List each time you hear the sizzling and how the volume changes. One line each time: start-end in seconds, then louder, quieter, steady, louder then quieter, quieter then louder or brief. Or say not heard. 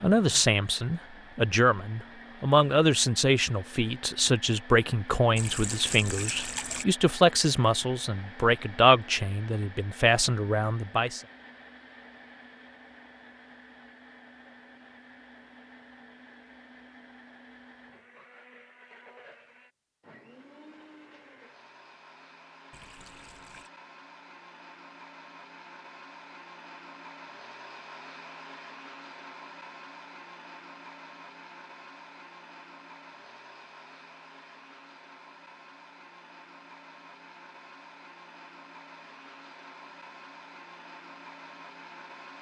not heard.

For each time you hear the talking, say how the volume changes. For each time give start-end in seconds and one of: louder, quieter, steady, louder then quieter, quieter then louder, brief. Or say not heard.
0.0-11.2 steady.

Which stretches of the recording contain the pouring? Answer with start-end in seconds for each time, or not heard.
5.3-6.8, 22.7-23.7.